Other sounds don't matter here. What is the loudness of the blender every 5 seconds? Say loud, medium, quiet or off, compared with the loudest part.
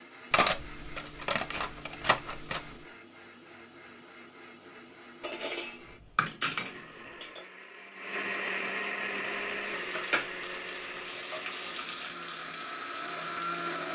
quiet, loud, loud.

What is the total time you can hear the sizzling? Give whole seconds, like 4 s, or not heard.
5 s.